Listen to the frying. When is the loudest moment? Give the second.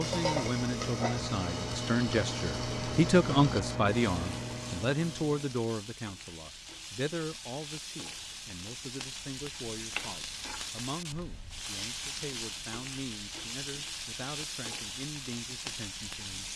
1 s.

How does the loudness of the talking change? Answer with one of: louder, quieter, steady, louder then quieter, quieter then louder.
quieter.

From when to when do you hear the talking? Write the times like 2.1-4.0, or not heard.
0.0-16.5.